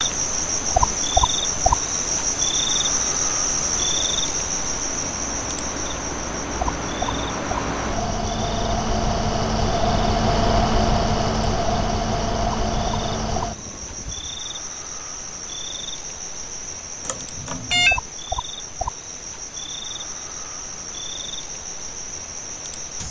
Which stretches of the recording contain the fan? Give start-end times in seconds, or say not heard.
0.0-14.4.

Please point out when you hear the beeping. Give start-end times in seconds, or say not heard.
17.1-18.0.